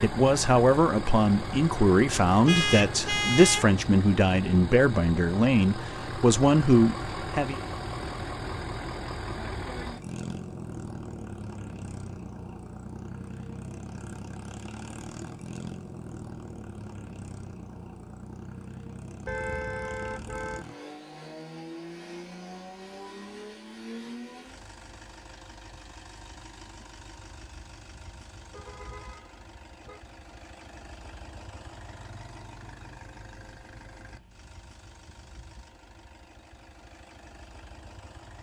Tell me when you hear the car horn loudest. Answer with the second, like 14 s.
3 s.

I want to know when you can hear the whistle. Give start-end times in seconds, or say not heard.
not heard.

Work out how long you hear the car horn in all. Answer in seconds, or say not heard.
4 s.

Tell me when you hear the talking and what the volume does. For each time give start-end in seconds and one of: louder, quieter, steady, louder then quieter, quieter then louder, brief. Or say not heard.
0.0-7.6 steady.